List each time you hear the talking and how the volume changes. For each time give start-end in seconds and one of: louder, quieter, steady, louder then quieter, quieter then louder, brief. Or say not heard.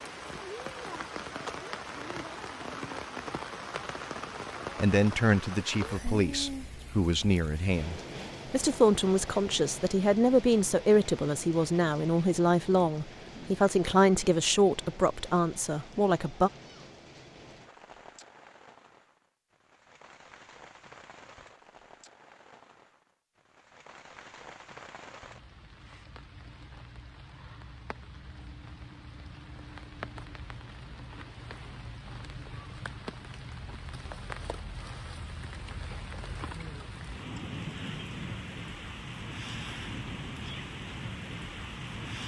4.8-16.5 steady.